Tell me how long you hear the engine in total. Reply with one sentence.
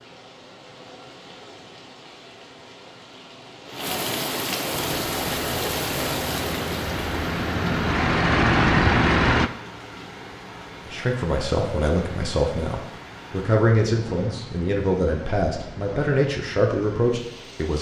The engine can be heard for 5 seconds in total.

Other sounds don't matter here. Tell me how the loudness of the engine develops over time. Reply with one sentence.
The volume of the engine goes up.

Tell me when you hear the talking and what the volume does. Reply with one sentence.
The talking can be heard from 10.8 to 17.7 s, at a steady volume.